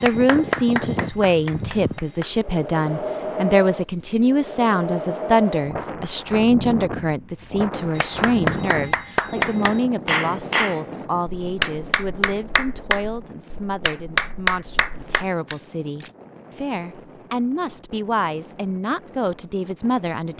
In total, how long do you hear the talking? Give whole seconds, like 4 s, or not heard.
20 s.